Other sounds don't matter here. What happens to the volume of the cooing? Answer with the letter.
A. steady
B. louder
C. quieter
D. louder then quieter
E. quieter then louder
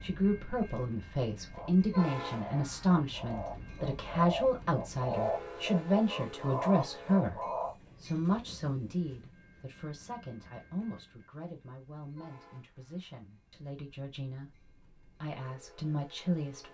B.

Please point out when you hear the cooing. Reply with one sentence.
The cooing can be heard from 1.5 to 7.8 s.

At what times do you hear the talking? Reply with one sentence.
The talking can be heard from 0.0 to 7.4 s and from 8.0 to 16.6 s.